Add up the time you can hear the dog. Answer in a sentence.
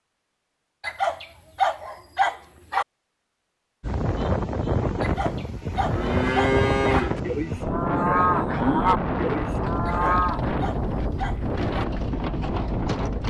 You can hear the dog for 6 seconds altogether.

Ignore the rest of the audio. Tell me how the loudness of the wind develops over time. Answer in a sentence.
The loudness of the wind stays about the same.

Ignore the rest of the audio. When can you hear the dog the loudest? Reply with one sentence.
The volume of the dog peaks at 2 seconds.